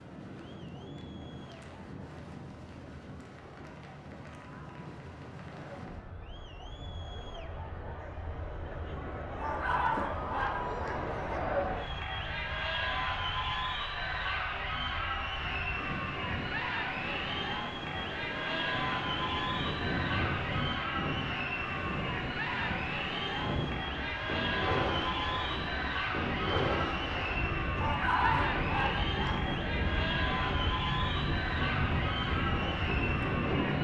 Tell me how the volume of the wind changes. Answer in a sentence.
The volume of the wind goes up.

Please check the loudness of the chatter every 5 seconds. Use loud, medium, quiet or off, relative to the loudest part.
quiet, medium, loud, loud, loud, loud, loud.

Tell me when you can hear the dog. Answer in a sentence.
You can hear the dog from 9.3 to 11.4 s and from 27.8 to 29.6 s.